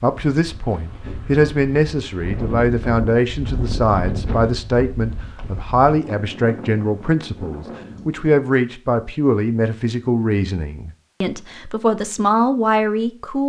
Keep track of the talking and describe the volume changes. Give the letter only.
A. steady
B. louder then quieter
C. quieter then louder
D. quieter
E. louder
A.